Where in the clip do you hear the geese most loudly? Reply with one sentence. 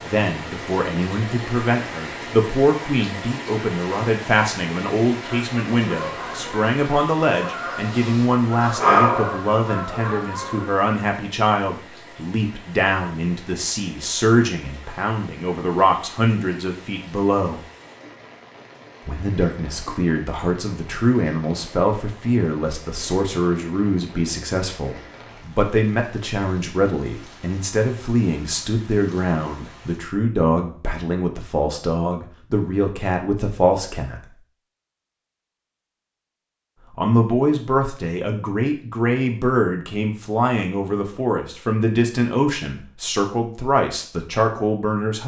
The volume of the geese peaks at 9 seconds.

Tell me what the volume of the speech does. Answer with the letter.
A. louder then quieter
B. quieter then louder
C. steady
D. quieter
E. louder
C.